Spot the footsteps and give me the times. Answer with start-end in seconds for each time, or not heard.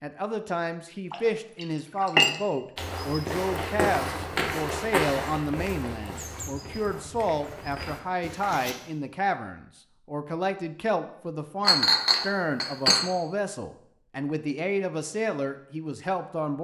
2.8-8.8.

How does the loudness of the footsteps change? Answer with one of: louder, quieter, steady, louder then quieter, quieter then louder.
quieter.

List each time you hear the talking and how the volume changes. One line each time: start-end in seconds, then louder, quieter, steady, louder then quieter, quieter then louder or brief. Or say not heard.
0.0-16.6 steady.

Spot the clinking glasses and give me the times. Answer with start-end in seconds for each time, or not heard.
1.1-2.4, 11.7-13.1.